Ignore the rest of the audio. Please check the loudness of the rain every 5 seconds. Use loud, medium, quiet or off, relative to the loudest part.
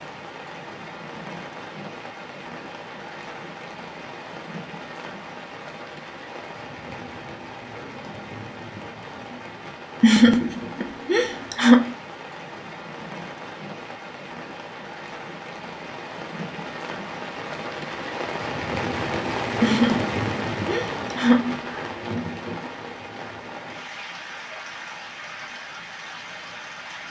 medium, medium, medium, loud, loud, medium.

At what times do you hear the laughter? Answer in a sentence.
The laughter can be heard from 10.0 to 11.9 s and from 19.6 to 21.9 s.